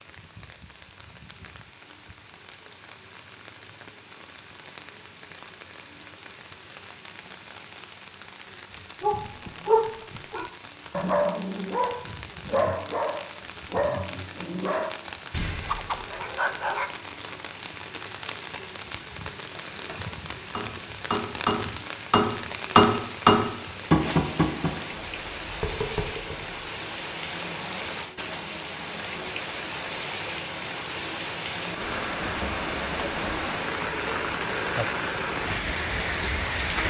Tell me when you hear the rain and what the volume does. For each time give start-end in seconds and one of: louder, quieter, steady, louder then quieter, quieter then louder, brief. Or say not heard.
0.0-36.8 louder.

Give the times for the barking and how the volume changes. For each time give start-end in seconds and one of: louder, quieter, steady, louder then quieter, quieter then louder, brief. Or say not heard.
9.0-16.9 quieter.